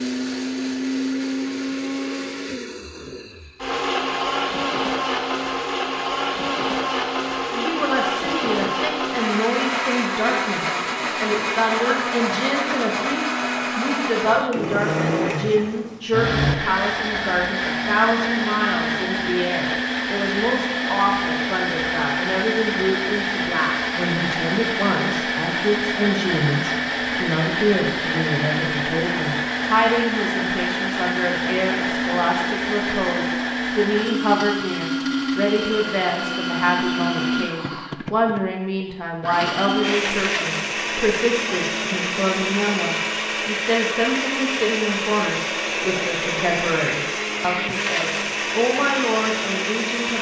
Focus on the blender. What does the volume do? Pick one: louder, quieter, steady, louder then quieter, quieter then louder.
steady.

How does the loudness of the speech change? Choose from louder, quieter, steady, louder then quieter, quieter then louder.
steady.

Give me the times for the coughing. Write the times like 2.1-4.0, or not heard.
not heard.